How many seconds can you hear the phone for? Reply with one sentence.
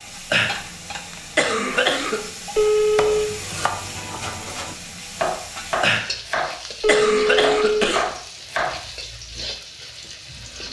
You can hear the phone for 2 seconds altogether.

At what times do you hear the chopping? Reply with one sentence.
The chopping can be heard from 3.0 to 8.8 s.